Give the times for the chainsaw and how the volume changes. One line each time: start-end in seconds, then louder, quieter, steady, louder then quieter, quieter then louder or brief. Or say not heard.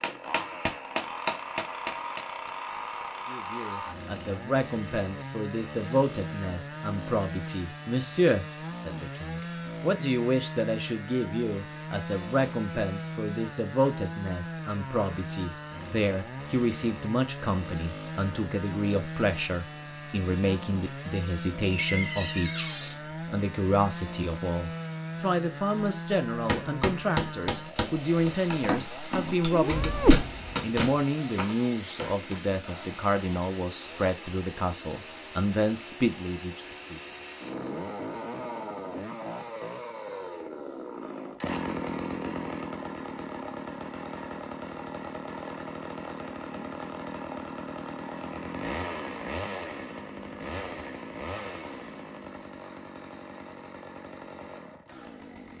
0.0-55.5 steady.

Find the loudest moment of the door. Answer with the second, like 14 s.
22 s.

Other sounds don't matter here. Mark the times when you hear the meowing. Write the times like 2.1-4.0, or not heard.
29.4-30.2.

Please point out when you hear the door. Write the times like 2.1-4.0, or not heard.
21.6-23.0, 29.6-30.7.